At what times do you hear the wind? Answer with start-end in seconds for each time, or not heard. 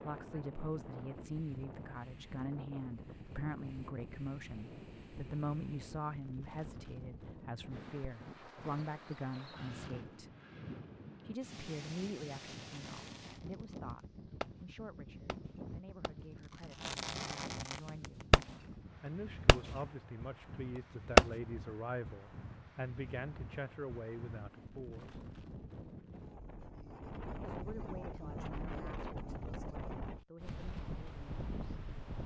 0.0-32.2.